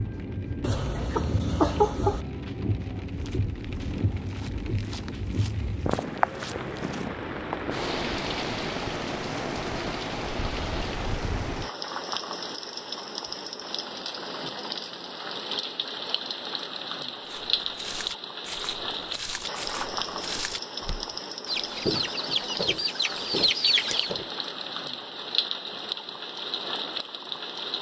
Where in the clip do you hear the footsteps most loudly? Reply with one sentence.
The loudest moment of the footsteps is at 22 seconds.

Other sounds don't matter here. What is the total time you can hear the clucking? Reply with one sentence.
The clucking can be heard for 4 seconds in total.